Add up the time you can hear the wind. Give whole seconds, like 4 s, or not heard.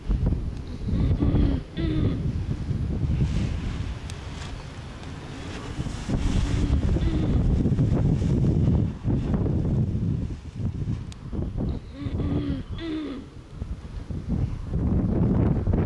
16 s.